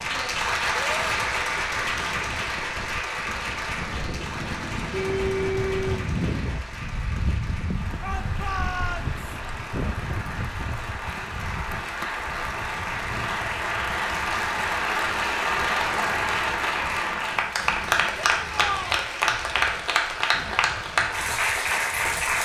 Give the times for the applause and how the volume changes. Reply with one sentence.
You can hear the applause from 0.0 to 22.4 s, getting quieter then louder.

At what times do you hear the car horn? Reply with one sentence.
The car horn can be heard from 4.5 to 6.2 s.